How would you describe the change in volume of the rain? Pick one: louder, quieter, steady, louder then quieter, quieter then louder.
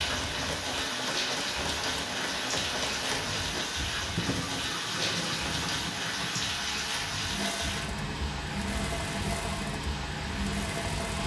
steady.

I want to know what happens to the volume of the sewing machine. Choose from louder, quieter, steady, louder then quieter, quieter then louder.
steady.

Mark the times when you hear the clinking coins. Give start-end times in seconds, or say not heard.
not heard.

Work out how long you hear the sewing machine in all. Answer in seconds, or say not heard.
11 s.